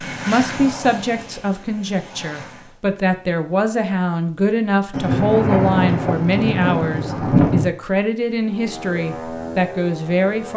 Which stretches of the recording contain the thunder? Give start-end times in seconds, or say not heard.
4.9-7.7.